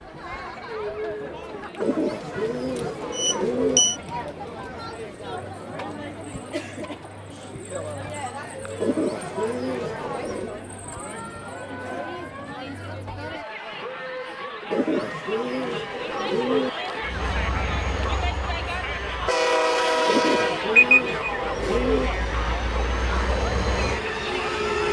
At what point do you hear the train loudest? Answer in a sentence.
The volume of the train peaks at 20 seconds.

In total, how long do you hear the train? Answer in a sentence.
The train can be heard for 8 seconds in total.